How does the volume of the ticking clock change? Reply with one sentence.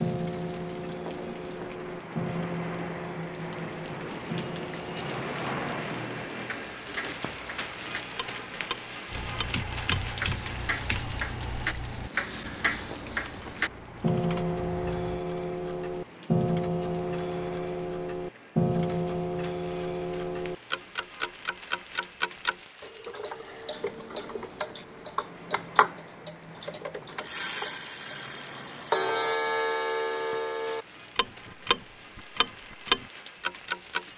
The volume of the ticking clock goes up.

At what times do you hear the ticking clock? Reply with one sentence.
The ticking clock can be heard from 0.0 to 34.1 s.